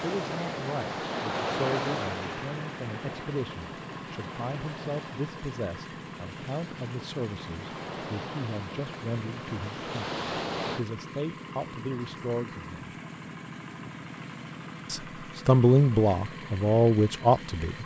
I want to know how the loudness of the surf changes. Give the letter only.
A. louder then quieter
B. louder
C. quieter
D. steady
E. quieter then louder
E.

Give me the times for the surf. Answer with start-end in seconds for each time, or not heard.
0.0-10.8.